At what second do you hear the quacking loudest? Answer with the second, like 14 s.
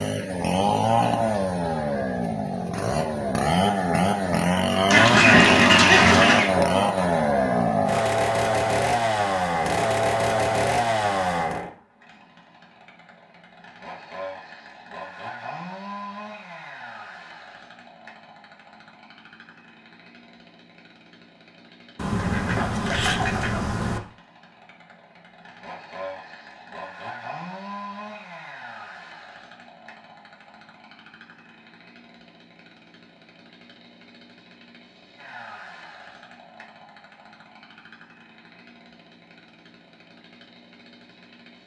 5 s.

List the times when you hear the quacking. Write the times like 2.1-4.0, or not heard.
4.9-6.5, 21.9-24.0.